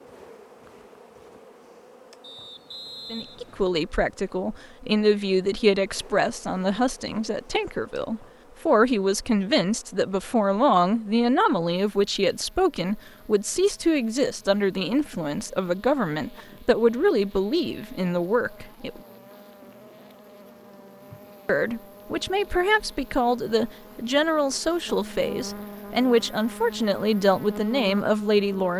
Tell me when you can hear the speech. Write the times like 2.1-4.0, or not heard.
3.1-19.0, 21.4-28.7.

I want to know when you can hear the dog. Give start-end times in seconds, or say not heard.
not heard.